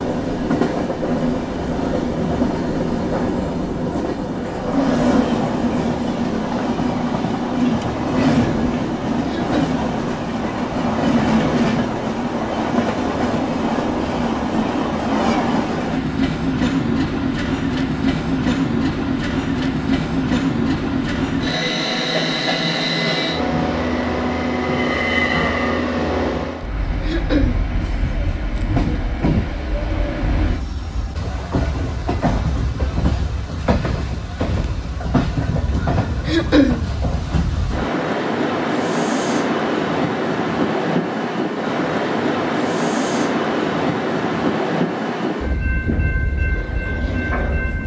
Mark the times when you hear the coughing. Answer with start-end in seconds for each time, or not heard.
9.2-9.8, 27.0-27.6, 36.2-36.8.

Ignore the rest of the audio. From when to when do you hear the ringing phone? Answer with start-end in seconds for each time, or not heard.
not heard.